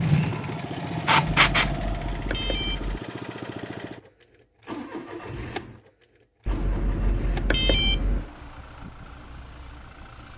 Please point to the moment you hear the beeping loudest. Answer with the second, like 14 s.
8 s.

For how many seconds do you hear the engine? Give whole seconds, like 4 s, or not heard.
10 s.